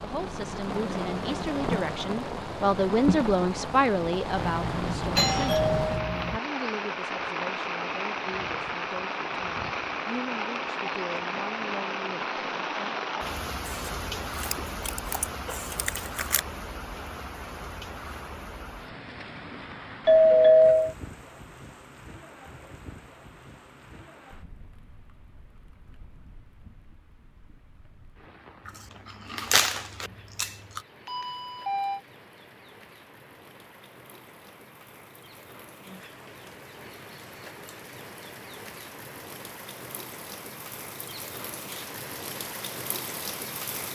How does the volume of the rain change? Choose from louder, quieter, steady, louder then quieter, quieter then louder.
quieter then louder.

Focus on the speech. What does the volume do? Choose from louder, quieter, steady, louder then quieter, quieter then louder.
louder then quieter.